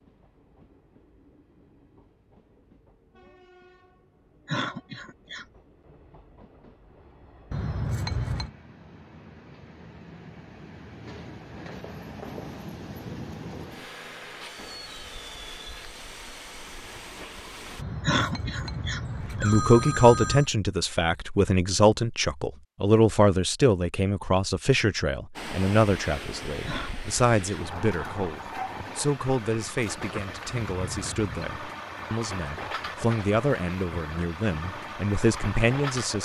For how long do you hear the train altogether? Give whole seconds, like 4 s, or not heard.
29 s.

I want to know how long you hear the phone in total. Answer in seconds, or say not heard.
5 s.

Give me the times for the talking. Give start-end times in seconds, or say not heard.
19.4-36.2.